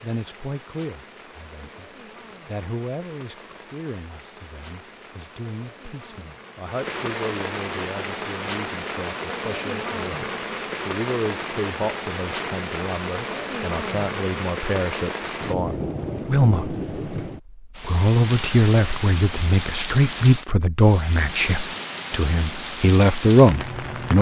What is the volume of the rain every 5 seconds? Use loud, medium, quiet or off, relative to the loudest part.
quiet, loud, loud, loud, loud.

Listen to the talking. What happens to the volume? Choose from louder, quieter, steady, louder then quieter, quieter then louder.
louder.